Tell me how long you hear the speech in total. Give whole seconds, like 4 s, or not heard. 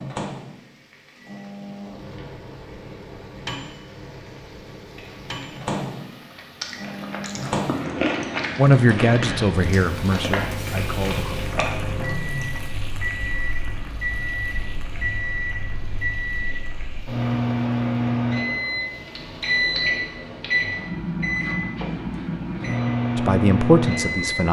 4 s.